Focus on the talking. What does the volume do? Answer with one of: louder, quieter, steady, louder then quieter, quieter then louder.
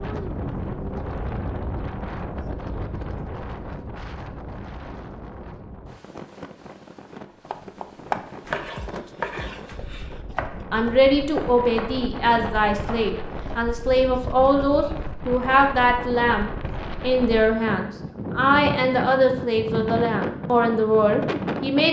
steady.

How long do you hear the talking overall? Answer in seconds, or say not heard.
11 s.